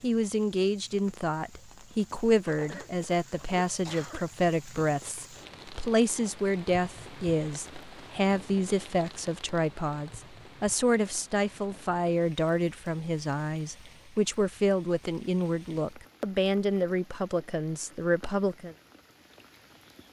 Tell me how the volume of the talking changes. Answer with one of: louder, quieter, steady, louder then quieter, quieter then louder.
steady.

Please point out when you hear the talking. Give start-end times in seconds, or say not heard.
0.0-18.8.